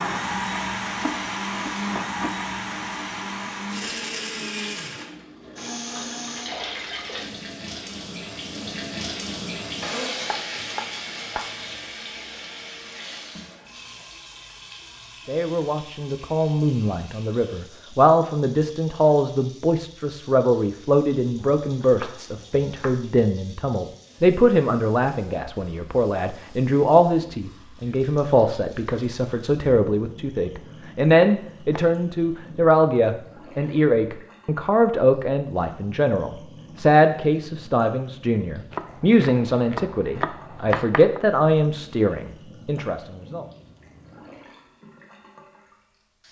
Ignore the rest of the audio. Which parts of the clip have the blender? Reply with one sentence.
The blender can be heard from 0.0 to 6.5 s.